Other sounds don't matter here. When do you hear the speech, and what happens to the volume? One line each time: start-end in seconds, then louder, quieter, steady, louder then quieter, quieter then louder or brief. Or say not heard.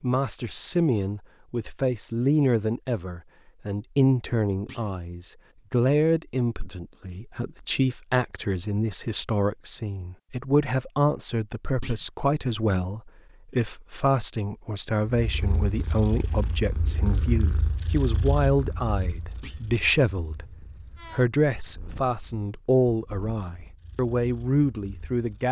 0.0-25.4 steady.